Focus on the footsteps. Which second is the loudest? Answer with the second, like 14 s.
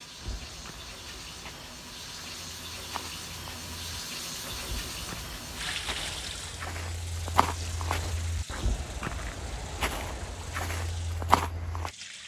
11 s.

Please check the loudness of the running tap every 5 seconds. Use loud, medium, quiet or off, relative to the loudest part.
loud, loud, medium.